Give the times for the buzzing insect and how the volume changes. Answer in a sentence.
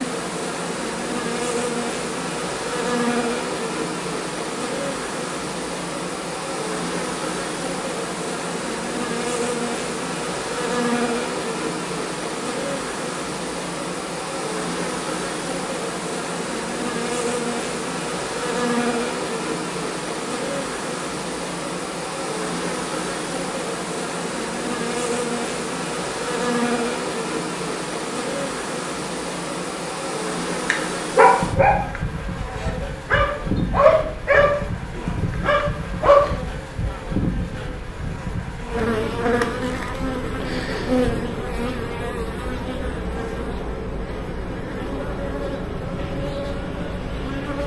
You can hear the buzzing insect from 0.0 to 47.6 s, at a steady volume.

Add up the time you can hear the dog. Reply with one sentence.
You can hear the dog for 5 seconds altogether.